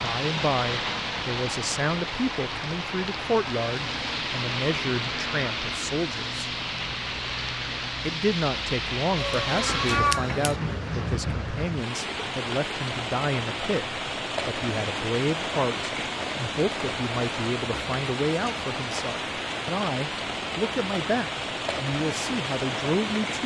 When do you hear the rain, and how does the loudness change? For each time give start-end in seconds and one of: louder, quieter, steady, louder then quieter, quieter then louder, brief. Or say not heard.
0.0-23.4 steady.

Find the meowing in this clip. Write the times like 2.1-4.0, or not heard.
9.2-10.6.